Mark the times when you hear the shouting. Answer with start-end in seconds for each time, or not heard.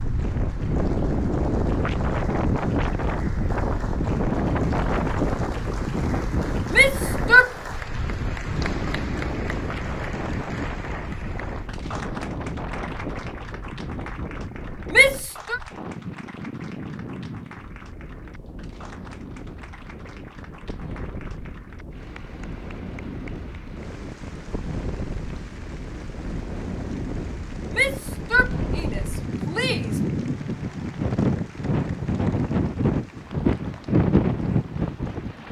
6.7-7.5, 14.9-15.6, 27.7-30.0.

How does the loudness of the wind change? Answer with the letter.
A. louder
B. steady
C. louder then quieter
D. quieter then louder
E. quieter
D.